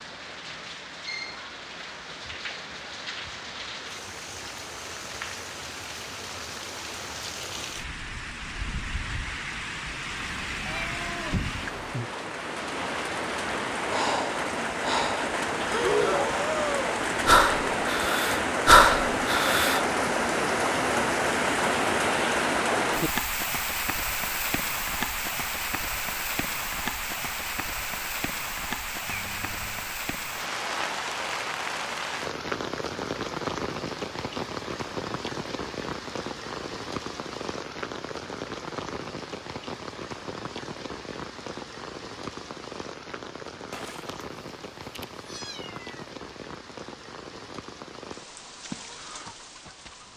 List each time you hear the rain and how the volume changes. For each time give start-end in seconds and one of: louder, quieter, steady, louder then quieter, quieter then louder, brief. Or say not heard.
0.0-50.1 louder then quieter.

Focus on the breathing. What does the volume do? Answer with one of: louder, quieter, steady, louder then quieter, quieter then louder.
louder.